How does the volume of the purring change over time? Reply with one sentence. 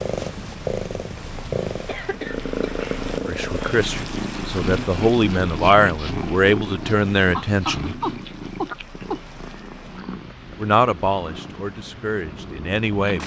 The volume of the purring goes down.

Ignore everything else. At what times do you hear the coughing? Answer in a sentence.
You can hear the coughing from 1.9 to 2.6 s and from 7.3 to 9.2 s.